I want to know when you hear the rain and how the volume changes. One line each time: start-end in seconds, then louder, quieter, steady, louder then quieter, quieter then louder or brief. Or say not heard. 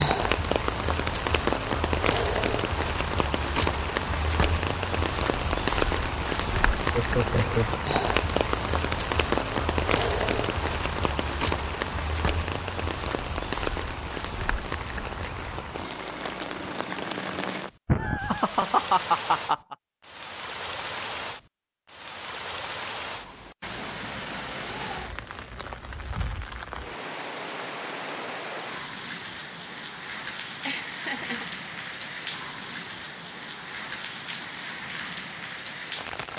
0.0-36.3 quieter.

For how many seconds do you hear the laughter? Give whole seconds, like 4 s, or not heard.
4 s.